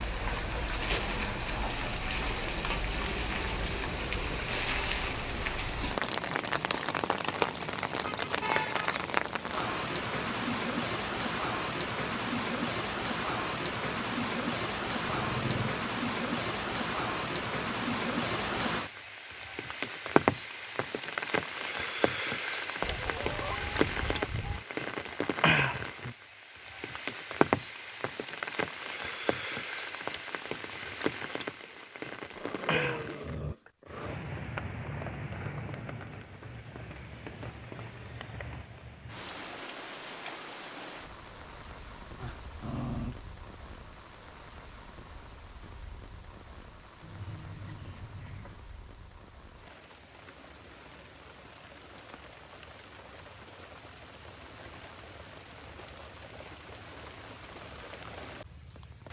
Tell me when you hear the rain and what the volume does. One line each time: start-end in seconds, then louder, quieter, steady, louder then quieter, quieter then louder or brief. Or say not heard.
0.0-59.0 quieter.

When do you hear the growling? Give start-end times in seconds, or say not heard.
15.1-15.8, 32.4-34.1, 42.2-43.1.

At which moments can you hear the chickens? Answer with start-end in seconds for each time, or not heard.
22.8-24.6, 47.0-48.6.